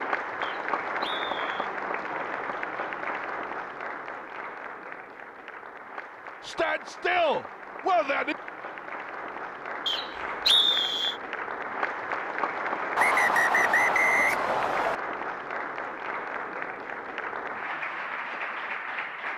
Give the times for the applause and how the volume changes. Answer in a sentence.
The applause can be heard from 0.0 to 19.3 s, getting quieter then louder.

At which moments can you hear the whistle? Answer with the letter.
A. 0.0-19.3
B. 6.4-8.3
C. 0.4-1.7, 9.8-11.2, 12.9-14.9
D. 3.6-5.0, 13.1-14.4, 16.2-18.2
C.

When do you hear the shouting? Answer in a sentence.
The shouting can be heard from 6.4 to 8.3 s.